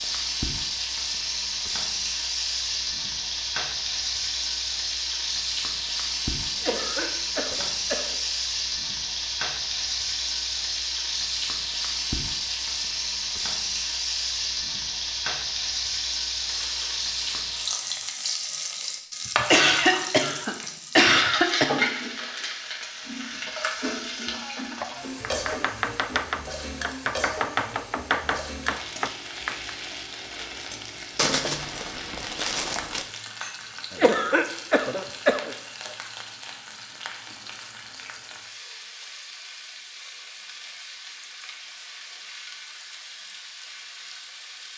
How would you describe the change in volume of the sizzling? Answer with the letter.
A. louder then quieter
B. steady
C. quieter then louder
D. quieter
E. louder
D.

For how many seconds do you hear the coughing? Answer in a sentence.
You can hear the coughing for 6 seconds altogether.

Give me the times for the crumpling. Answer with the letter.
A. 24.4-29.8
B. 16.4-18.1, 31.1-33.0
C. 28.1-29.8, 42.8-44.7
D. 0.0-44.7
B.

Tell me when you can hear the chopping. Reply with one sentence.
You can hear the chopping from 24.4 to 29.8 s.